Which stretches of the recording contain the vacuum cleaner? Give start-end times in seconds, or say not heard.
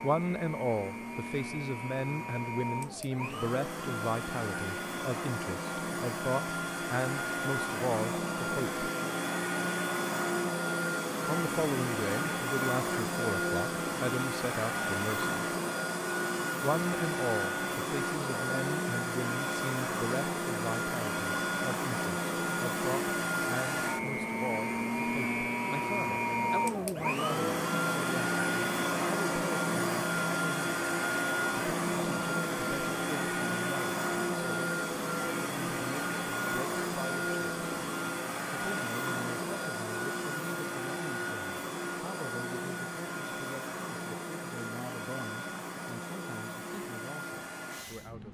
0.0-48.2.